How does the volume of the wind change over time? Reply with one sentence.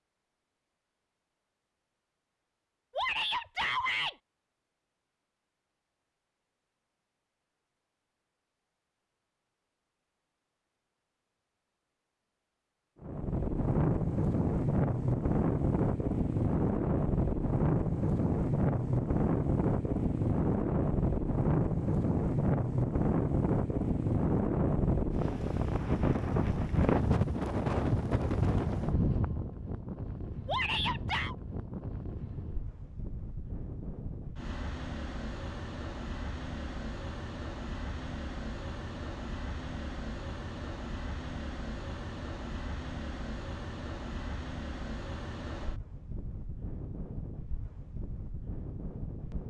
The loudness of the wind goes down.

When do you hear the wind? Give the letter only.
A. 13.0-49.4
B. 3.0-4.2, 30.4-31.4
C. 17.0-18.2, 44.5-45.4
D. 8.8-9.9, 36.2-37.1
A.